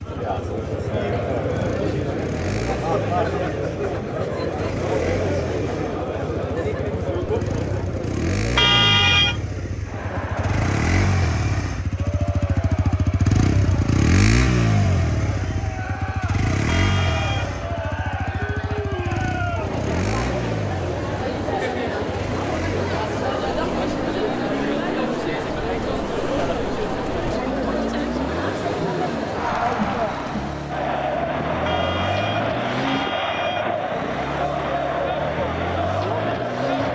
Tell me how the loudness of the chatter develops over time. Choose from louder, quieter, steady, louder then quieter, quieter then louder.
quieter then louder.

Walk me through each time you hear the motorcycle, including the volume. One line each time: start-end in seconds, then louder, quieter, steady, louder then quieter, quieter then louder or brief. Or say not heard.
0.0-36.9 louder then quieter.